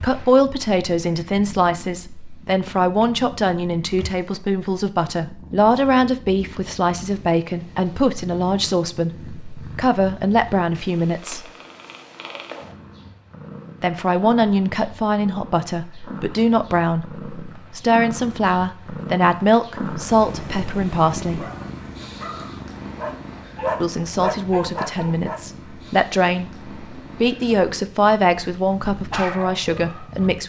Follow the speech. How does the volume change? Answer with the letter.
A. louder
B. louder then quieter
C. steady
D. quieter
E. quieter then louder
C.